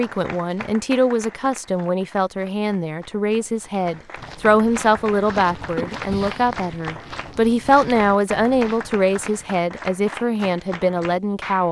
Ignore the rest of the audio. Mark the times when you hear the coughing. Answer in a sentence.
The coughing can be heard from 5.8 to 6.2 s.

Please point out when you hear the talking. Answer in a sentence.
You can hear the talking from 0.0 to 11.6 s.